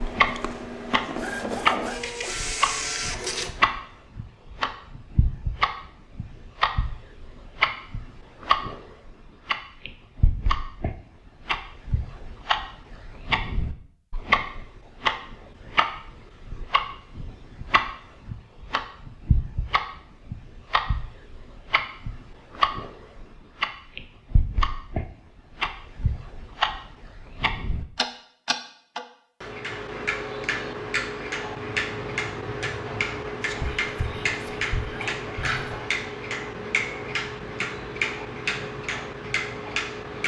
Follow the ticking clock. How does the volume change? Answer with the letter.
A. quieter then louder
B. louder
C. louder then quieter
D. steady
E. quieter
D.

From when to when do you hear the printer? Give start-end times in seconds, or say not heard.
0.0-3.6.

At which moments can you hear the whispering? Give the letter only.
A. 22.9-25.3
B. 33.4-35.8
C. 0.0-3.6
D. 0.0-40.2
B.